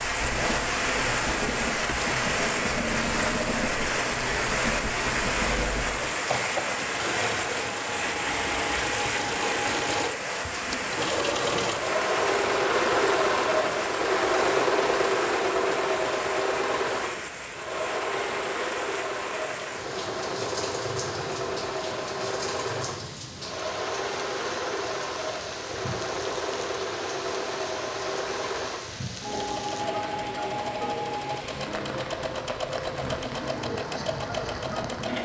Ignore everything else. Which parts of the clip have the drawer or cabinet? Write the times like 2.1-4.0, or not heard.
not heard.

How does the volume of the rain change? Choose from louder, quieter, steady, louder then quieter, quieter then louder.
quieter.